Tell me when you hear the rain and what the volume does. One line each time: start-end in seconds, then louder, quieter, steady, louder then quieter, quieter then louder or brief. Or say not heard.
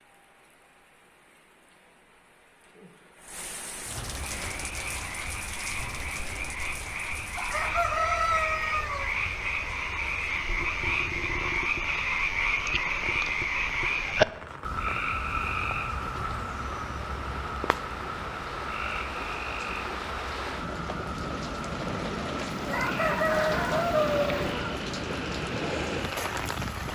0.0-26.8 louder.